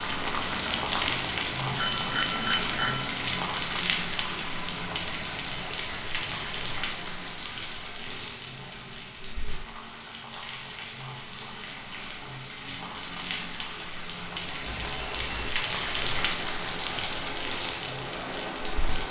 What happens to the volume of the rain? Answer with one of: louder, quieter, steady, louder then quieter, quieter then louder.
quieter then louder.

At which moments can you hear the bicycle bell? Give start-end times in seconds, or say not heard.
1.8-3.1, 14.7-15.5.